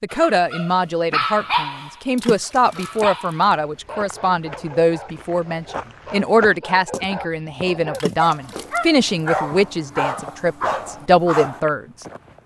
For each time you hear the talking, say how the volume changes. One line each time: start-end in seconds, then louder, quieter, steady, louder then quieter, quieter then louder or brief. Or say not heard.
0.0-12.1 steady.